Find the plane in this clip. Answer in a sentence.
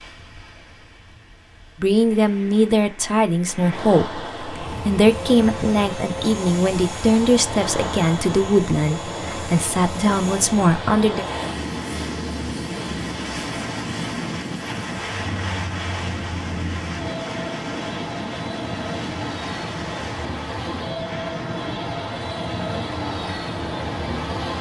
You can hear the plane from 4.5 to 24.5 s.